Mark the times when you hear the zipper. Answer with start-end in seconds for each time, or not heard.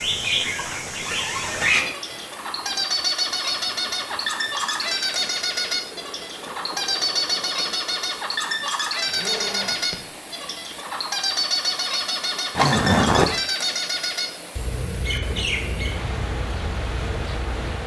0.2-1.9, 9.1-10.1, 12.6-13.4.